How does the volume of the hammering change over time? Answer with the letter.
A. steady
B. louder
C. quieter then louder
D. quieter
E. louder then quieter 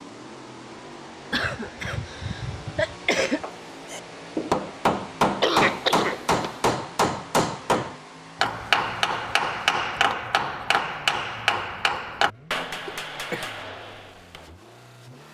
D.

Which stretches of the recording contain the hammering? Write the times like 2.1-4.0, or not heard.
3.2-14.6.